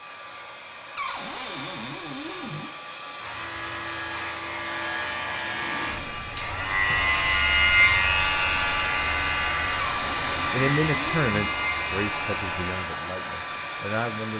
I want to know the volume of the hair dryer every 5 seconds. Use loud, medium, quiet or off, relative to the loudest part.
medium, loud, loud.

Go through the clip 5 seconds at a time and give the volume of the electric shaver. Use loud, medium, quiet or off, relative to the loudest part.
medium, loud, medium.